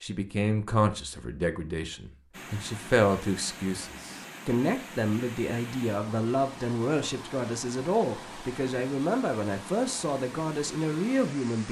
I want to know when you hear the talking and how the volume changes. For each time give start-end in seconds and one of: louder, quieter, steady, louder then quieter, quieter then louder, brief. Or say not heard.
0.0-11.6 steady.